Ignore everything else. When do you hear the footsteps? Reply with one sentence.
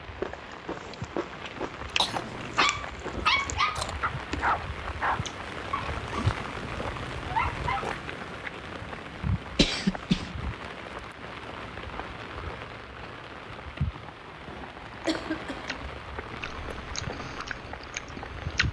You can't hear the footsteps here.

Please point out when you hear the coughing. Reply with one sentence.
The coughing can be heard from 1.6 to 2.2 s, from 9.6 to 10.3 s and from 14.5 to 15.8 s.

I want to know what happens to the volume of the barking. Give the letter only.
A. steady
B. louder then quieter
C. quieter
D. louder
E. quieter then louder
E.